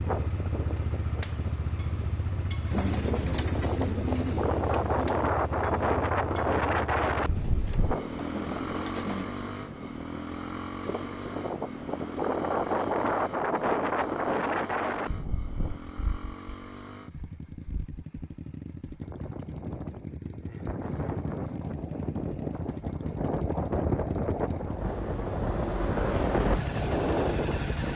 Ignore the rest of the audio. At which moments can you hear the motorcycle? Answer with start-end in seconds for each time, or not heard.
0.0-27.9.